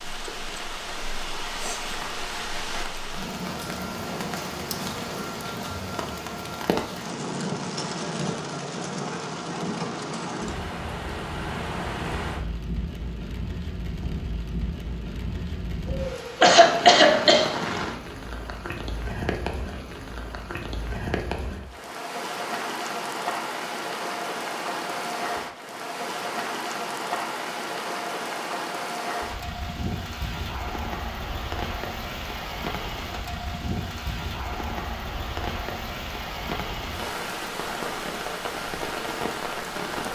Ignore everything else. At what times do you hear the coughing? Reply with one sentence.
The coughing can be heard from 15.9 to 17.5 s.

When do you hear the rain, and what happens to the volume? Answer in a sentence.
You can hear the rain from 0.0 to 40.1 s, at a steady volume.